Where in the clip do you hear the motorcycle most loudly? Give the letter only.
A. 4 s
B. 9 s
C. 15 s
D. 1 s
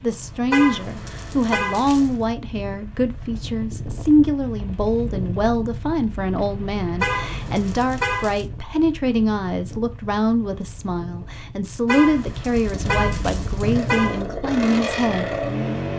C.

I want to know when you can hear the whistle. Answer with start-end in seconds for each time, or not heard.
not heard.